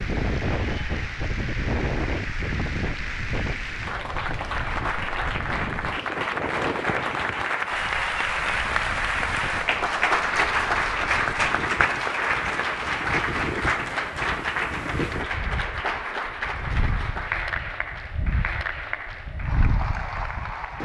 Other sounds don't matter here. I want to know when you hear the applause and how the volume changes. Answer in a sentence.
You can hear the applause from 0.0 to 20.7 s, getting louder then quieter.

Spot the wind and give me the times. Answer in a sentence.
You can hear the wind from 0.0 to 20.7 s.